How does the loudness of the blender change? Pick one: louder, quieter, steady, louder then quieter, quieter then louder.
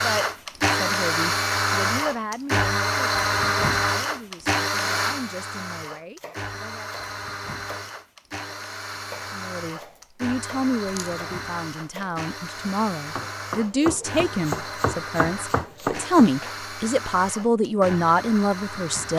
quieter.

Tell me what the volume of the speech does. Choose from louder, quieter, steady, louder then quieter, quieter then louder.
quieter then louder.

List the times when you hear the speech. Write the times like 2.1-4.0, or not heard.
0.0-6.9, 9.3-19.1.